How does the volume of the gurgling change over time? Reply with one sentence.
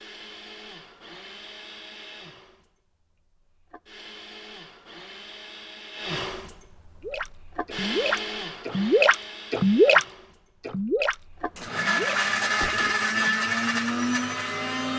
The loudness of the gurgling goes up, then down.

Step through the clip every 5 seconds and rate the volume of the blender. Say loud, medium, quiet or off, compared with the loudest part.
quiet, medium, loud.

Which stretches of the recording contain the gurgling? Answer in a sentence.
The gurgling can be heard from 7.0 to 13.3 s.